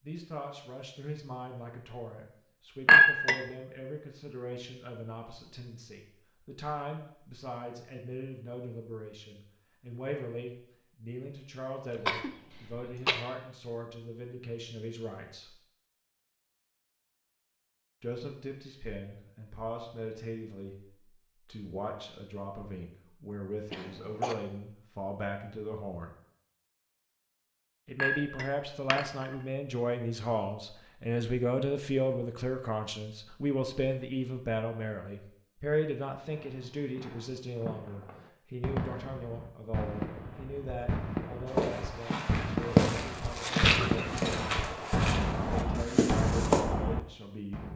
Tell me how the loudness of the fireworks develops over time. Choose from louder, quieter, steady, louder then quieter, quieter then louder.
louder.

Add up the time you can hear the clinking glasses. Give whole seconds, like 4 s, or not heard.
2 s.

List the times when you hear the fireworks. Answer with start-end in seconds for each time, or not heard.
36.2-47.7.